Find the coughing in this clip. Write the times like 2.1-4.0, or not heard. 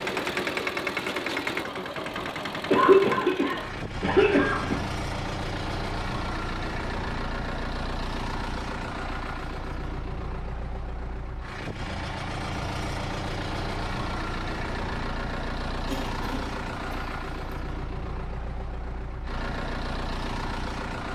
2.7-4.8, 15.8-17.2.